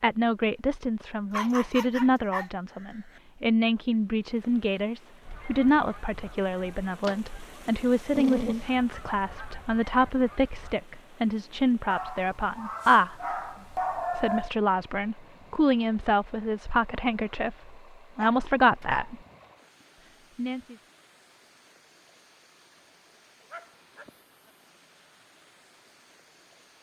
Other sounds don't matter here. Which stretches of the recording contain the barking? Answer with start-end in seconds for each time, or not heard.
1.3-3.2, 8.1-8.7, 11.9-14.5, 17.6-19.1, 23.5-24.5.